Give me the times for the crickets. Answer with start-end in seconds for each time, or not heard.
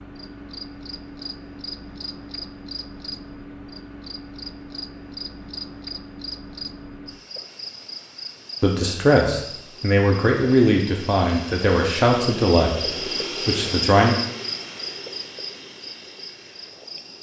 0.0-17.1.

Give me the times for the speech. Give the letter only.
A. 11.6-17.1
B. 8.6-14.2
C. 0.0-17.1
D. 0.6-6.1
B.